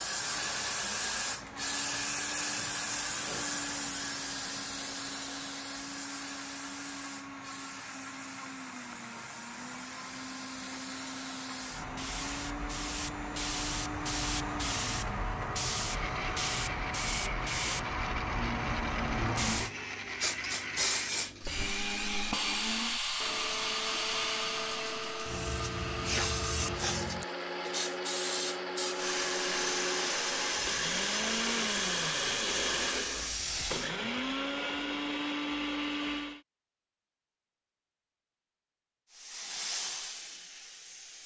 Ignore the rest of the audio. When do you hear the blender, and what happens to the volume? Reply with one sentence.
You can hear the blender from 0.1 to 36.4 s, getting louder.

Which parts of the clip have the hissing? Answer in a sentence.
You can hear the hissing from 0.0 to 34.0 s and from 39.1 to 41.2 s.